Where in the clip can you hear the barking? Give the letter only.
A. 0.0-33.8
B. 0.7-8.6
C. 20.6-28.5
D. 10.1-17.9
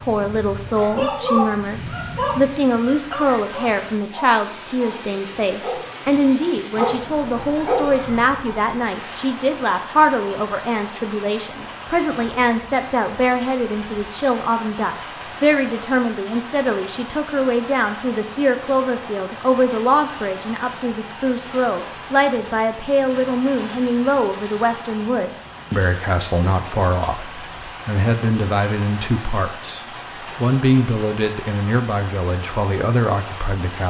B.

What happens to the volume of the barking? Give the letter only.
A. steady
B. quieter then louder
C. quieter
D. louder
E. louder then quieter
B.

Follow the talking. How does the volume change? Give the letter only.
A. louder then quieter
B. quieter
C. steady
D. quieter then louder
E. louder
C.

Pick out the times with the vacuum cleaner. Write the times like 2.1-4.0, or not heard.
not heard.